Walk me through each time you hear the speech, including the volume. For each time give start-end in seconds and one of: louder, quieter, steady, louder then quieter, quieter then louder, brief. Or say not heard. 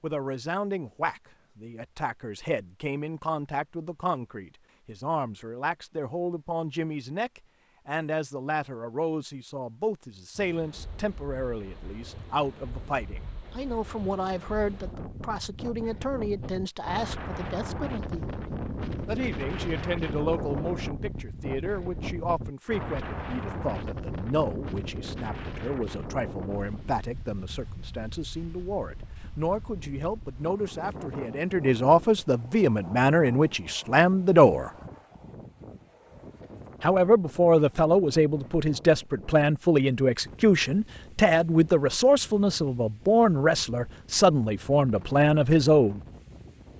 0.0-18.2 steady
19.1-34.7 louder
36.8-46.0 steady.